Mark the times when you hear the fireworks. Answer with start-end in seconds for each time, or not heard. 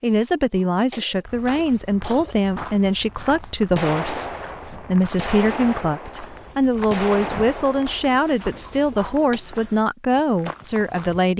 3.7-8.2.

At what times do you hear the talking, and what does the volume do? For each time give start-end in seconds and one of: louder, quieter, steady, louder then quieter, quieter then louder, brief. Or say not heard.
0.0-11.3 steady.